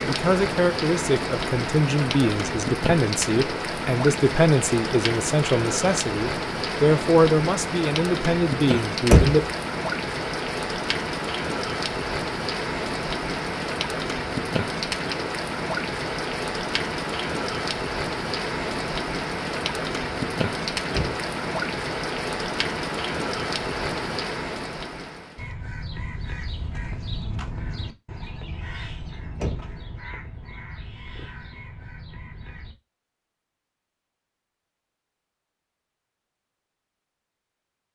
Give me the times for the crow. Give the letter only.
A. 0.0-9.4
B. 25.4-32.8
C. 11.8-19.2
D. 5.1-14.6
B.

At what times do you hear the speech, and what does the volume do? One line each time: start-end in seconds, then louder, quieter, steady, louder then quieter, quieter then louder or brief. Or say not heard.
0.0-9.4 steady.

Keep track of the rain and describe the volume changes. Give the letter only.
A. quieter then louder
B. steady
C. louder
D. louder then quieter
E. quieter
B.